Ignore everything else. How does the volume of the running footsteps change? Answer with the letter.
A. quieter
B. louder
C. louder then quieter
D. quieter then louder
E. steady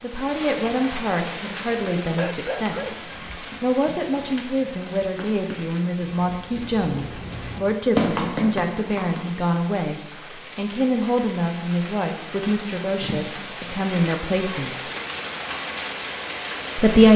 B.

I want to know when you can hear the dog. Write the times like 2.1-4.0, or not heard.
2.1-3.4.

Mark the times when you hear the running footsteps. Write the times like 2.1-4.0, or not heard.
3.0-9.4.